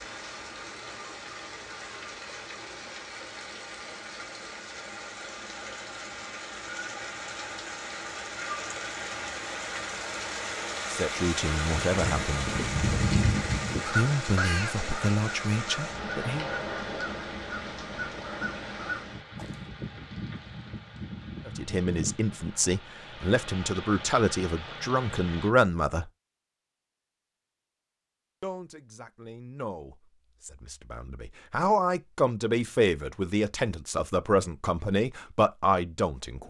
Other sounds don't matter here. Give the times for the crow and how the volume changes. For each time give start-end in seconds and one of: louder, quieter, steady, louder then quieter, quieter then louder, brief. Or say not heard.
11.7-19.7 quieter.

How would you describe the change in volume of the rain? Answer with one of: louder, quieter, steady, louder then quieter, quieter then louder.
louder then quieter.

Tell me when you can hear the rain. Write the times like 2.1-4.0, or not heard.
0.0-25.5.